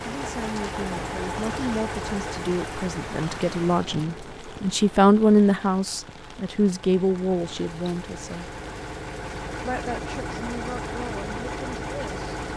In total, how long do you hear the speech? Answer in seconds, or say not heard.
11 s.